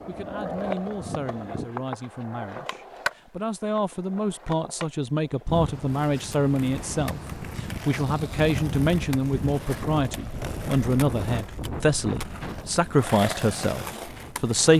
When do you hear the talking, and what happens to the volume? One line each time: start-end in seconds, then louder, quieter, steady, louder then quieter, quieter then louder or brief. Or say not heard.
0.1-14.7 louder.